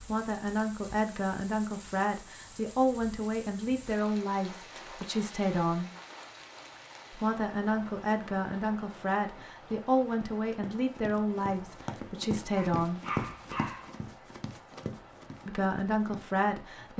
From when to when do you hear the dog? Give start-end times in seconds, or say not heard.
12.6-13.9.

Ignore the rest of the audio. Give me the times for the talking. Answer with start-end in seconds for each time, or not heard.
0.0-5.9, 7.1-13.0, 15.4-16.9.